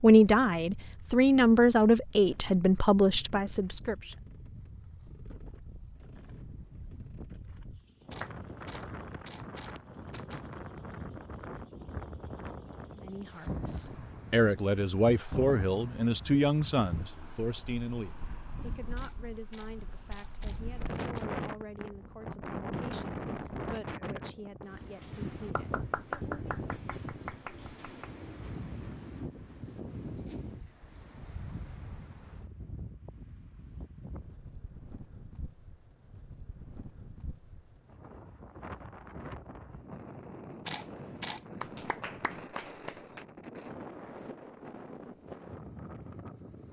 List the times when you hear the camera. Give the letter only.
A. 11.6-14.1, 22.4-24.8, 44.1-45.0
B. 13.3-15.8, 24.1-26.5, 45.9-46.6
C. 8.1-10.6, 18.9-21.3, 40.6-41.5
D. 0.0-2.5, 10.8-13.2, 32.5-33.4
C.